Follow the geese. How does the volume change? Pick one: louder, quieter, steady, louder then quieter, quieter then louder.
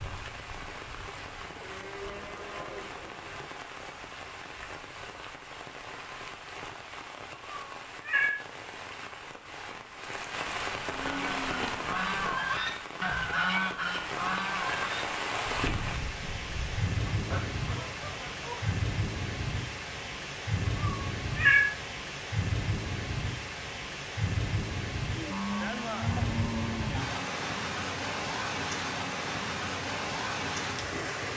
quieter.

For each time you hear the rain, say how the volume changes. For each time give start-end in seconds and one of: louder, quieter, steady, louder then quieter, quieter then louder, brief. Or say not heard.
0.0-31.3 louder.